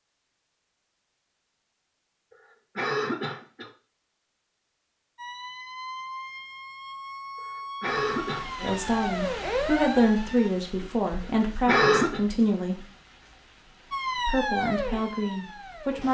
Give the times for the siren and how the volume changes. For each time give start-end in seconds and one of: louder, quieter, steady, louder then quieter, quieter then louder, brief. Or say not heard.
5.2-10.5 louder
13.9-16.0 brief.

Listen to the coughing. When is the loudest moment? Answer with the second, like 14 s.
12 s.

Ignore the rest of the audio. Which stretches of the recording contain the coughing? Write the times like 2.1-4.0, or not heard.
2.8-3.7, 7.8-8.8, 11.7-12.2.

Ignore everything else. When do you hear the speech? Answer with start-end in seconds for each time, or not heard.
8.6-12.8, 14.2-16.0.